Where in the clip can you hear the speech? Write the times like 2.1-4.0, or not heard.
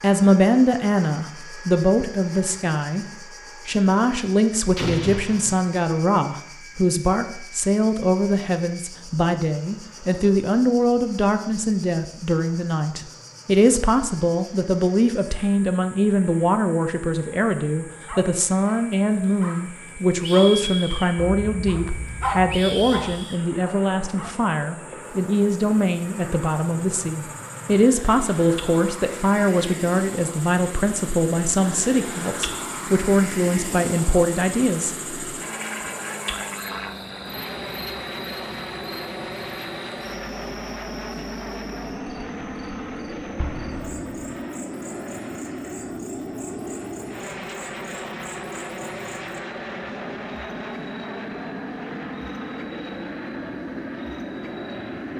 0.0-3.0, 3.6-35.1.